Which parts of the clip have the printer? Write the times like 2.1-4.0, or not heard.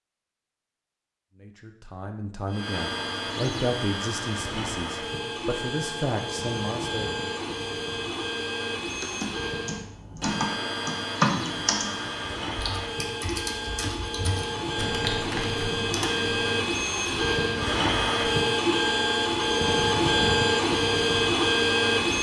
2.5-22.1.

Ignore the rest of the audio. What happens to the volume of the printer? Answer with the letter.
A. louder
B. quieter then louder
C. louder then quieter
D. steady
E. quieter
A.